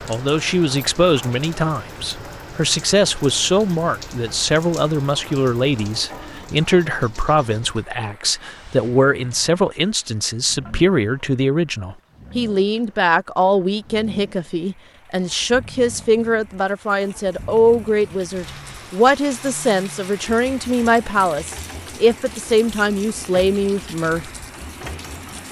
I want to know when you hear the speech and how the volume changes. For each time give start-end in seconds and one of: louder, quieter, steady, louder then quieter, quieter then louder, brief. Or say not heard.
0.1-24.3 steady.